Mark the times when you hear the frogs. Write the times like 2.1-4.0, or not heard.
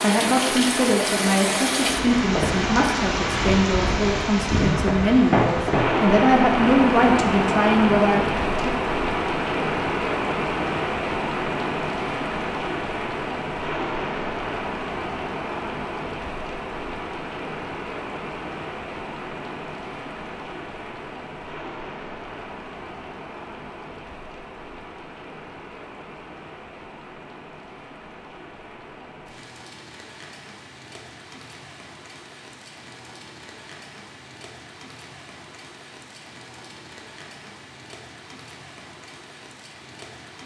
not heard.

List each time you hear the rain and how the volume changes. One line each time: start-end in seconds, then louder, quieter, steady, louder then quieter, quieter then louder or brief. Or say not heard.
0.0-40.4 quieter.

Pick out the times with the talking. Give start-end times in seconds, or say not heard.
0.0-8.7.